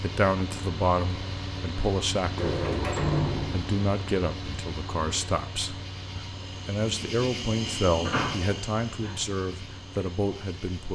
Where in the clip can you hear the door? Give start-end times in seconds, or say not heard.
2.4-3.8, 8.1-9.2.